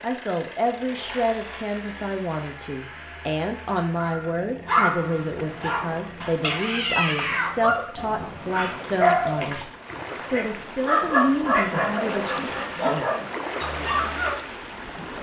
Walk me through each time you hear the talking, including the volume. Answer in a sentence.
You can hear the talking from 0.0 to 12.5 s, at a steady volume.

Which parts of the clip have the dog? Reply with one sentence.
You can hear the dog from 4.0 to 14.3 s.